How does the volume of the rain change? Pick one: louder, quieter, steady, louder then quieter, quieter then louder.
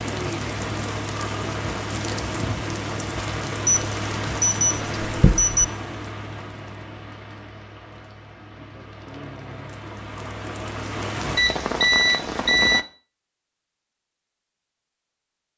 quieter then louder.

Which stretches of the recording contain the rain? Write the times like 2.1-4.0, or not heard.
0.0-12.8.